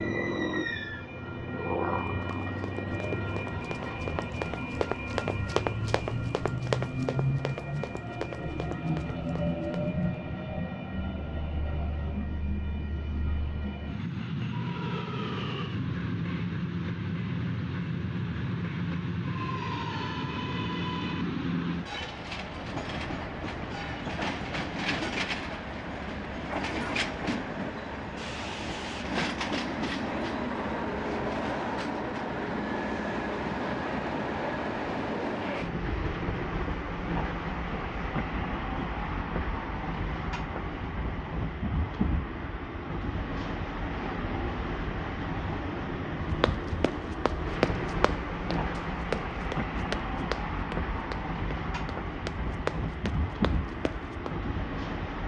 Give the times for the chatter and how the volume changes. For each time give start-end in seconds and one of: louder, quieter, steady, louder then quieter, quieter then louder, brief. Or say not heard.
not heard.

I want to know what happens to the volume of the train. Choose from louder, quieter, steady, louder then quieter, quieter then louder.
steady.